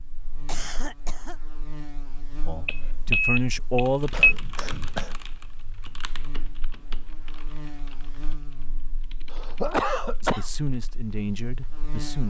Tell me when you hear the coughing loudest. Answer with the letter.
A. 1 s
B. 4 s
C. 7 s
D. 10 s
D.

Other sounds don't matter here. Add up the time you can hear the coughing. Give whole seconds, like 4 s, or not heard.
3 s.